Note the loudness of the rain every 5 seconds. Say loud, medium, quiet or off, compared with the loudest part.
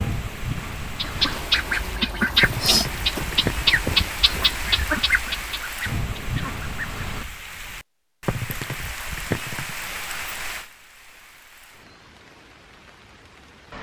loud, loud, medium.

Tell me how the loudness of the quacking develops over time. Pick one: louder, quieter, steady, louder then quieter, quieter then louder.
quieter.